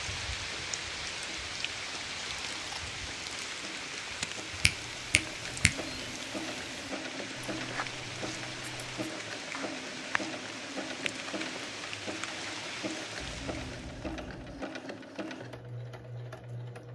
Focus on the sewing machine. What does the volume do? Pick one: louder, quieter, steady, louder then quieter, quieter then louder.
louder.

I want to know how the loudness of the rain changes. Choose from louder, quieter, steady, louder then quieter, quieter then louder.
steady.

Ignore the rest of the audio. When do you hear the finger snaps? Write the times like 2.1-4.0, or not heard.
4.6-6.1.